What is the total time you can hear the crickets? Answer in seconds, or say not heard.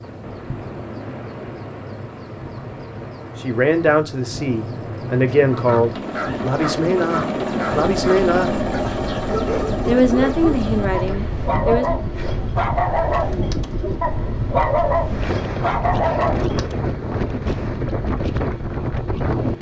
not heard.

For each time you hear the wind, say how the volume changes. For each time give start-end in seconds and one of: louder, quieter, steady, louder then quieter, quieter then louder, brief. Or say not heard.
0.0-19.5 louder.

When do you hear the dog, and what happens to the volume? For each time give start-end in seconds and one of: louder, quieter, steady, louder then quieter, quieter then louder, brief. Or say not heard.
5.3-16.8 louder.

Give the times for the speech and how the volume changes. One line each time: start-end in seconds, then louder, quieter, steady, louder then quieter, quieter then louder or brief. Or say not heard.
3.4-8.6 steady
9.8-11.9 brief.